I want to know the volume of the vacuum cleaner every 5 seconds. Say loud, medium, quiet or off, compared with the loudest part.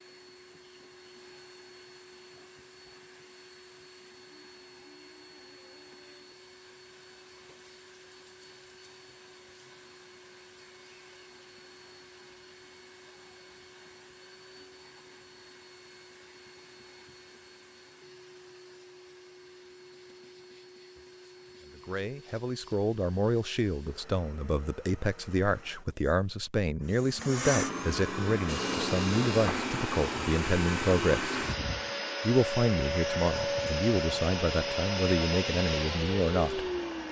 quiet, quiet, quiet, quiet, quiet, loud, loud, loud.